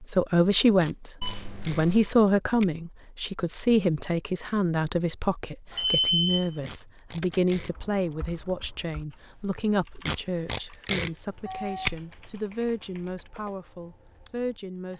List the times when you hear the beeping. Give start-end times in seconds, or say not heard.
1.2-2.1, 5.7-6.5, 11.2-12.4.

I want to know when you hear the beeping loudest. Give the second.
6 s.